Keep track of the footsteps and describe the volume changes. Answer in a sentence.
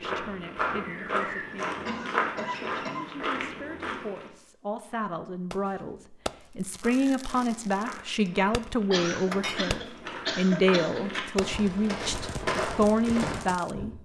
The loudness of the footsteps goes down, then up.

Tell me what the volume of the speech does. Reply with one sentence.
The volume of the speech goes up.